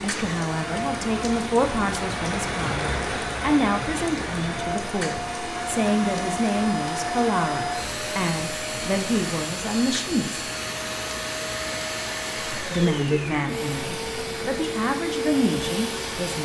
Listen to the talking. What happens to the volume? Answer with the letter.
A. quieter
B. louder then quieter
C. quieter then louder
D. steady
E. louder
D.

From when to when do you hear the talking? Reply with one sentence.
The talking can be heard from 0.0 to 10.4 s and from 12.6 to 16.3 s.